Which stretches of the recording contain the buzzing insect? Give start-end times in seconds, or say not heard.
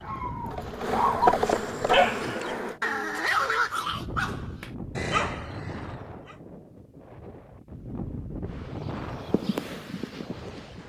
0.0-2.8, 8.4-10.8.